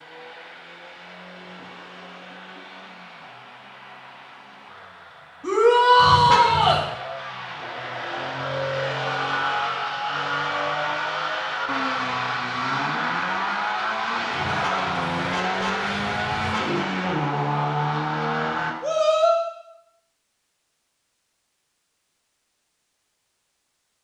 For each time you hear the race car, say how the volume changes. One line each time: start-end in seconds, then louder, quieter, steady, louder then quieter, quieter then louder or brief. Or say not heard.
0.0-18.8 louder.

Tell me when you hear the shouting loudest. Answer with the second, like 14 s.
6 s.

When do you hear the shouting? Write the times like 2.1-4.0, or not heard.
5.4-6.8, 18.8-19.4.